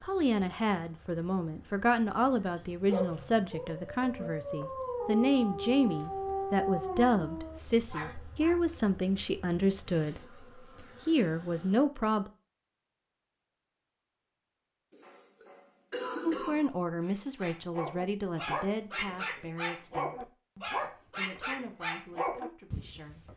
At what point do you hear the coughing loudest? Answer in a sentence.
The volume of the coughing peaks at 16 seconds.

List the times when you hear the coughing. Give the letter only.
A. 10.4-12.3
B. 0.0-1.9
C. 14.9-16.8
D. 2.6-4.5
C.